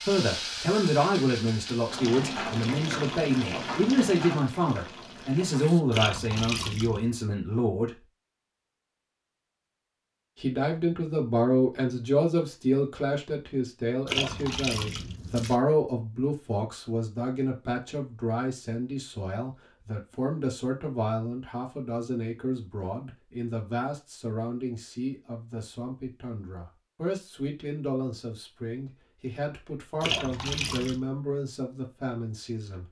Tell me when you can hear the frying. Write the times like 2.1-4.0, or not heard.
0.0-5.8.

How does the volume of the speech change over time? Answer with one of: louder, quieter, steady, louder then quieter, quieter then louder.
quieter.